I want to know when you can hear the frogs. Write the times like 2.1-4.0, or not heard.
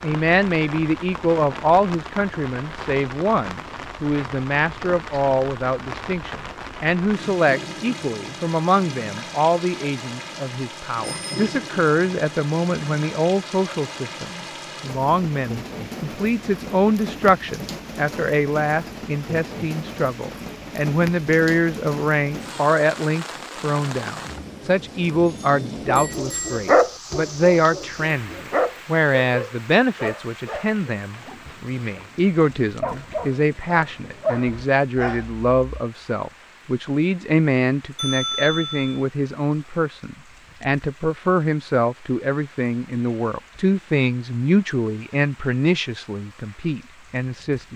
not heard.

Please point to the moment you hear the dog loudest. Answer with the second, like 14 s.
27 s.